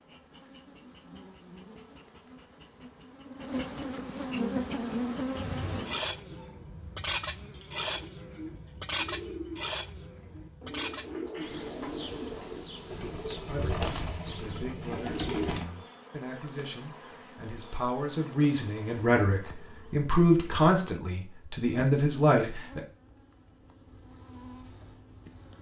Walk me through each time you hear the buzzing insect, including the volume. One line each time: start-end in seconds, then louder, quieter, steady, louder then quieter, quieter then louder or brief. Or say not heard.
0.0-25.5 quieter.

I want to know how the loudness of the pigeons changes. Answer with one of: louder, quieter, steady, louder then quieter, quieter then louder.
louder.